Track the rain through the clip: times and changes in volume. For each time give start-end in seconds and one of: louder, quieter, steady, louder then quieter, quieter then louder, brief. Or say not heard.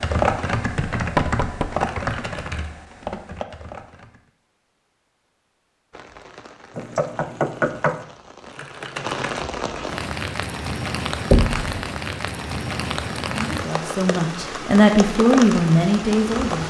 5.9-16.6 louder.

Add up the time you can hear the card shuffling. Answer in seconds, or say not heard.
2 s.